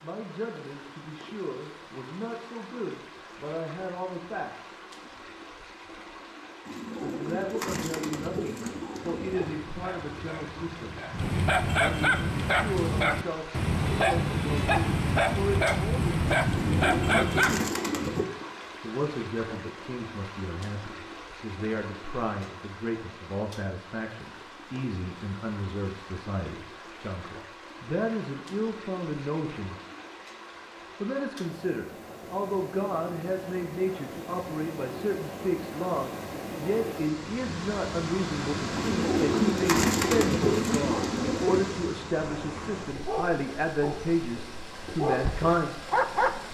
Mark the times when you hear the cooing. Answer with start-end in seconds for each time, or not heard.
6.7-9.5, 16.4-18.2, 38.7-41.6.